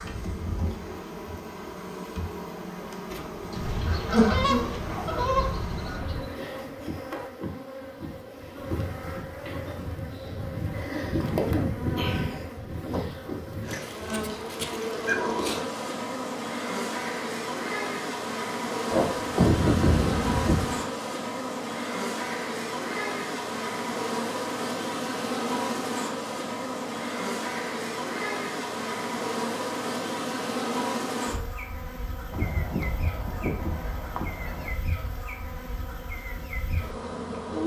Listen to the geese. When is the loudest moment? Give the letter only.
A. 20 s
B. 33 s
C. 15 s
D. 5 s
A.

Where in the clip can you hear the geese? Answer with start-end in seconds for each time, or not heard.
3.5-6.3, 13.8-15.2, 18.9-20.8, 32.3-34.8.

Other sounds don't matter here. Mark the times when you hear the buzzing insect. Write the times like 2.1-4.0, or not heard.
0.0-37.6.